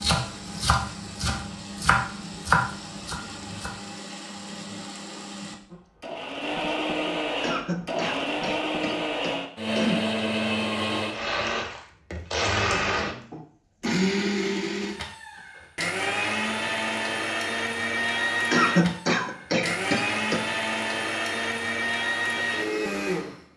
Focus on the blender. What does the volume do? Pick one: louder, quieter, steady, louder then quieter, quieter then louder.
louder.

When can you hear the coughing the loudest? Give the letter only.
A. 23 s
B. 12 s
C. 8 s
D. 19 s
D.